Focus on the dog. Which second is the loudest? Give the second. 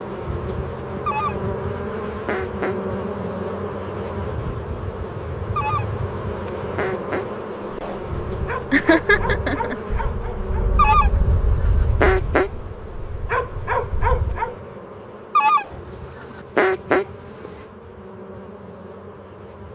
14 s.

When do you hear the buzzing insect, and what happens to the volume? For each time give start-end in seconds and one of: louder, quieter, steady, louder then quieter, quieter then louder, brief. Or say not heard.
0.0-19.7 quieter.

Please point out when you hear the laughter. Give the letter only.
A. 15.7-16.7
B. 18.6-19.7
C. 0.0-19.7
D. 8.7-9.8
D.